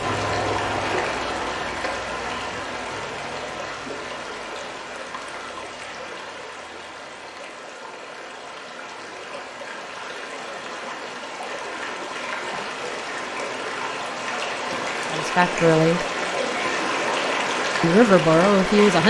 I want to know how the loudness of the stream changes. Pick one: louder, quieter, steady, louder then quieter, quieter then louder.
quieter then louder.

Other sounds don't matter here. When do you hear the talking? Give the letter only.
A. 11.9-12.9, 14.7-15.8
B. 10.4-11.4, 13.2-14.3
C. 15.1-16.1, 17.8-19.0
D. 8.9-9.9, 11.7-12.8
C.